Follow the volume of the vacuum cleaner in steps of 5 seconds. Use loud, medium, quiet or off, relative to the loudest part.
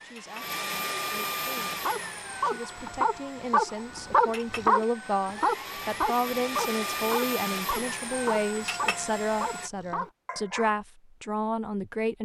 loud, loud, off.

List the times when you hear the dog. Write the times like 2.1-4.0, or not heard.
1.6-10.8.